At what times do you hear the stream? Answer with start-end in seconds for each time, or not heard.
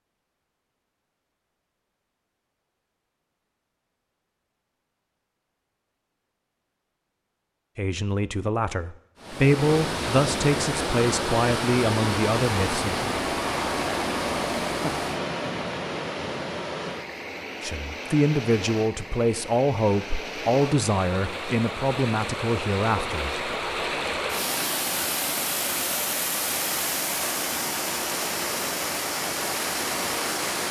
9.2-30.6.